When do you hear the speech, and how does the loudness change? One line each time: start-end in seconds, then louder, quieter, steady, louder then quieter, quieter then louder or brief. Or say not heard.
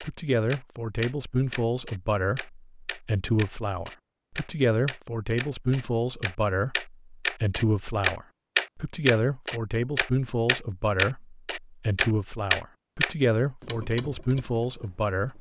0.0-15.3 steady.